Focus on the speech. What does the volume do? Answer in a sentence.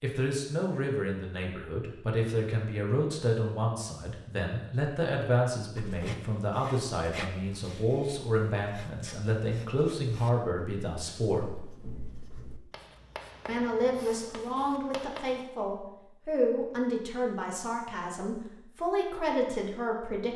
The loudness of the speech stays about the same.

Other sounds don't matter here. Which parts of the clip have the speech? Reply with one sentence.
You can hear the speech from 0.0 to 11.6 s and from 13.4 to 20.3 s.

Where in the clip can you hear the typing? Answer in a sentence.
The typing can't be heard in this clip.